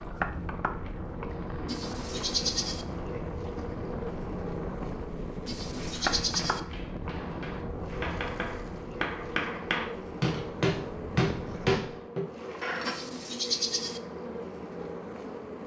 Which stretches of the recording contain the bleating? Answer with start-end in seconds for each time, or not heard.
1.6-2.9, 5.5-6.6, 12.8-14.0.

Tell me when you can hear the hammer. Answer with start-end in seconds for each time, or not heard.
5.8-12.9.